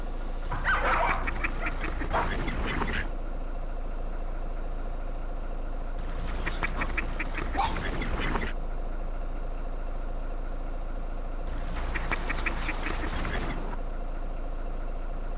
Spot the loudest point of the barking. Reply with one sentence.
The loudest moment of the barking is at 1 second.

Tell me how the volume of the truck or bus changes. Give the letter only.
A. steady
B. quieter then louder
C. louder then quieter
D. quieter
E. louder
A.